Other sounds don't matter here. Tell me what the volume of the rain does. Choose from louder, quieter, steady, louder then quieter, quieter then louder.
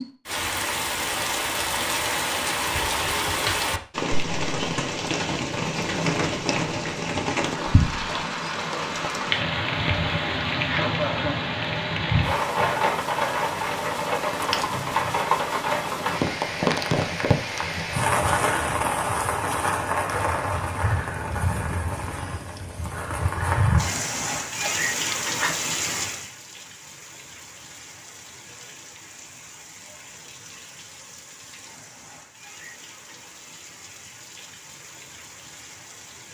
quieter.